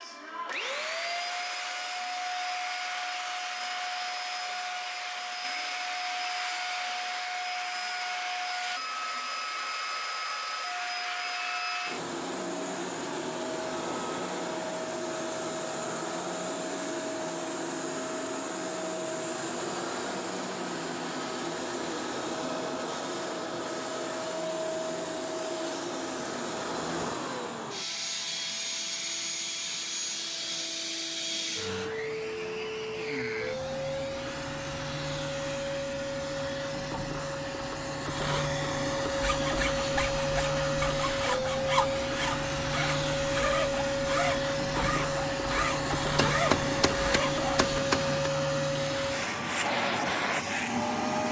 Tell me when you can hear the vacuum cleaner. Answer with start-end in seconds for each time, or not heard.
0.0-51.2.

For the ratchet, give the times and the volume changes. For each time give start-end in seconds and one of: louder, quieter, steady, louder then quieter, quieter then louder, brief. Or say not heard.
not heard.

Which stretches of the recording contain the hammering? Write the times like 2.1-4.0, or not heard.
46.1-48.3.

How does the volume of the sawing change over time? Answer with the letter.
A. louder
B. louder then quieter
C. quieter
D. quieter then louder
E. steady
E.